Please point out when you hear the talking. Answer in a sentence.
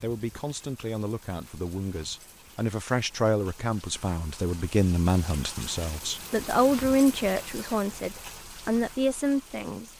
The talking can be heard from 0.0 to 9.9 s.